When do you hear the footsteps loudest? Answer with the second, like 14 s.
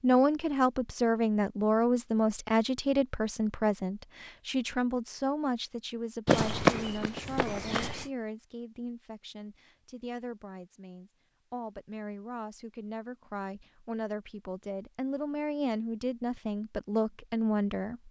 7 s.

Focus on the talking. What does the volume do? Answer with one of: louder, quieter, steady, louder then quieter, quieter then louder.
quieter then louder.